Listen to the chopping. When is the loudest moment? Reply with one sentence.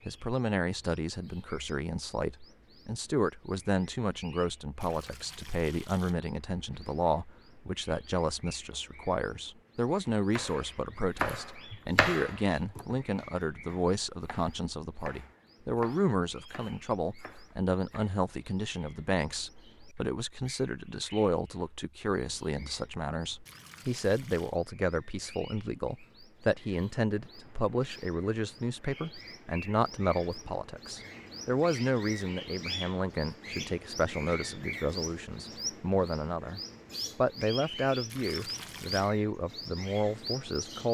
The volume of the chopping peaks at 12 seconds.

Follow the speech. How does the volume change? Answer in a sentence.
The volume of the speech stays about the same.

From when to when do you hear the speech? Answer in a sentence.
The speech can be heard from 0.1 to 40.8 s.